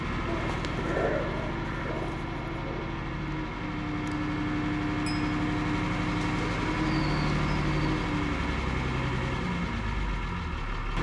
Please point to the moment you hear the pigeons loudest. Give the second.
1 s.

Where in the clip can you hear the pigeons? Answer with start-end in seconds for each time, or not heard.
0.2-2.9, 6.3-8.1.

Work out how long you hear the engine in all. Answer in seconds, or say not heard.
11 s.